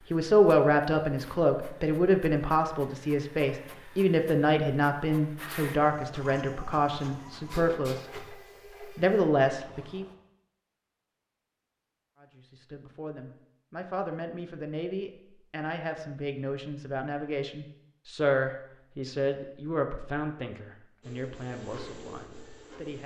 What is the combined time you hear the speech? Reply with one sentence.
You can hear the speech for 21 seconds altogether.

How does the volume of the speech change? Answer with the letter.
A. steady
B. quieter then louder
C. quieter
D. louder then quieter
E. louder
C.